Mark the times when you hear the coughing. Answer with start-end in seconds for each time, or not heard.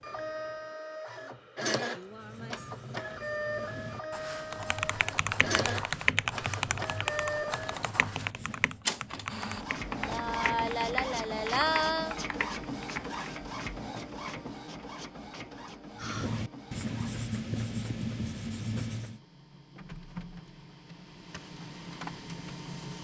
not heard.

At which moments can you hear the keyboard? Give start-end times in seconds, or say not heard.
4.5-13.2.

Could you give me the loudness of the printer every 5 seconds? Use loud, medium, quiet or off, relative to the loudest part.
loud, loud, loud, medium, medium.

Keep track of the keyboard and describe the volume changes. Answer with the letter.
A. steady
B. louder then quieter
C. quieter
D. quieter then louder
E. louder
C.